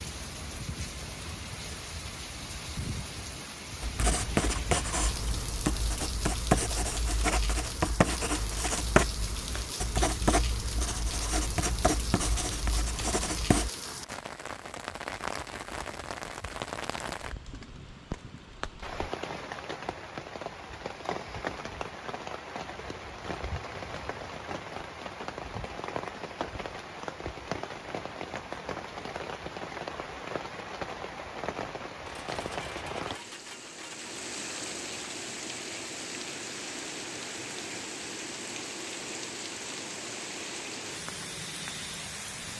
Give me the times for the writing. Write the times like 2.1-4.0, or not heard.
3.8-13.7.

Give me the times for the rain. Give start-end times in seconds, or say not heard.
0.0-42.5.